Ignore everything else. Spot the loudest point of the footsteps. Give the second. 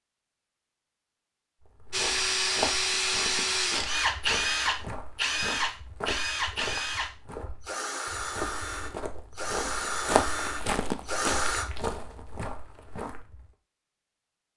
10 s.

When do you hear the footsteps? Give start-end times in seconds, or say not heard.
1.6-13.5.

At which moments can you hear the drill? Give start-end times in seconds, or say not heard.
1.9-11.7.